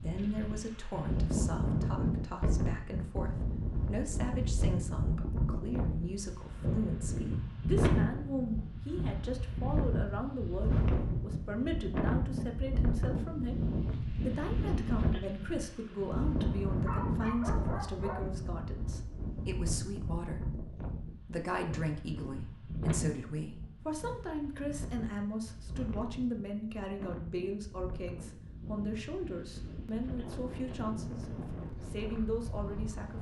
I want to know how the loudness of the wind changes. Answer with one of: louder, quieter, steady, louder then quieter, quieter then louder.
quieter.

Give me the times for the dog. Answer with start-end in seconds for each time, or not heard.
16.4-18.2.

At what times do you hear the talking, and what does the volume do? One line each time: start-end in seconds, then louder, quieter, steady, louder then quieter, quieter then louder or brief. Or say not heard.
0.0-33.1 steady.